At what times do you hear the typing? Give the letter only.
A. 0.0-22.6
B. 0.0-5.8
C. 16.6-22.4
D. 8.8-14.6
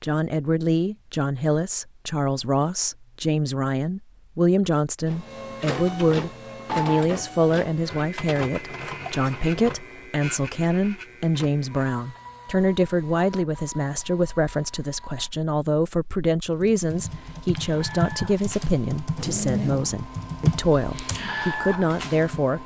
C.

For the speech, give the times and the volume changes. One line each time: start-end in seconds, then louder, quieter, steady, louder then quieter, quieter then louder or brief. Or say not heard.
0.0-22.6 steady.